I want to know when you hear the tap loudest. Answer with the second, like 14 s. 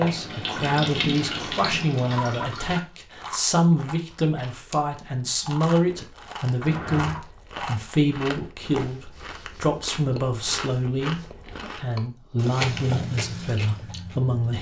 1 s.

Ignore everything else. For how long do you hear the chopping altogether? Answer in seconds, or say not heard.
not heard.